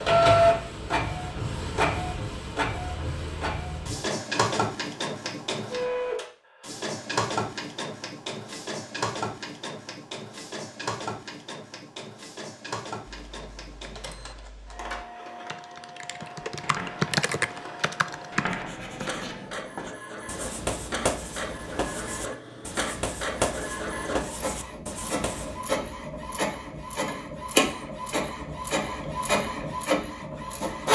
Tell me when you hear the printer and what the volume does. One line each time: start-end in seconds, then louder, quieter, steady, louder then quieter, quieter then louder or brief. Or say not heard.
0.0-30.9 quieter then louder.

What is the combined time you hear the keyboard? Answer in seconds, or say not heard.
6 s.